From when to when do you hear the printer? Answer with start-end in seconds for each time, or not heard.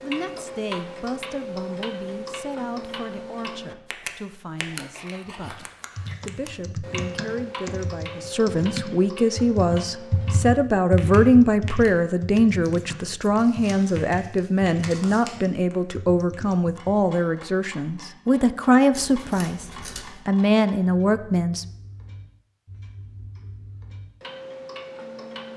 not heard.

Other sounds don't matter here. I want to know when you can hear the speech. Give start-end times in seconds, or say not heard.
0.0-5.7, 6.2-19.6, 20.2-21.6.